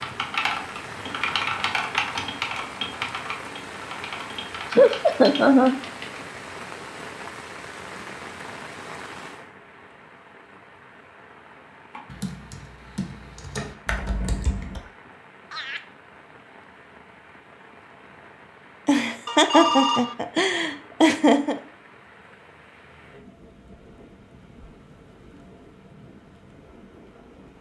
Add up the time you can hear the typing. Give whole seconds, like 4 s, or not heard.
9 s.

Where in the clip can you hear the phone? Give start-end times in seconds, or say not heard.
19.2-20.1.